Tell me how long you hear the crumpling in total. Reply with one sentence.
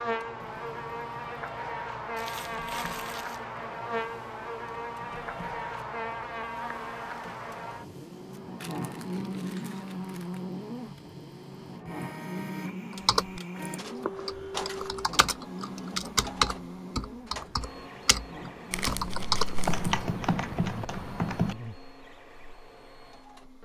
The crumpling can be heard for 4 seconds in total.